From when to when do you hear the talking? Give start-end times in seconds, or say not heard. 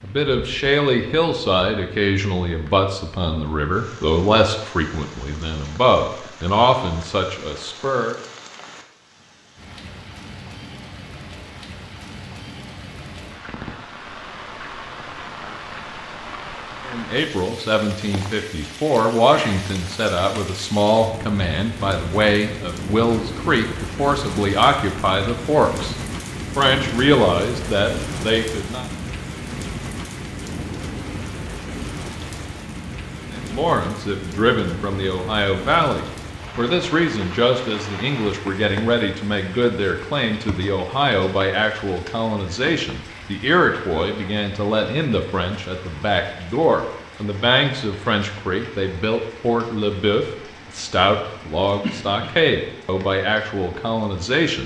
0.0-8.2, 16.9-28.9, 33.3-54.6.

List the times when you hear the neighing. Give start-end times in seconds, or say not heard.
not heard.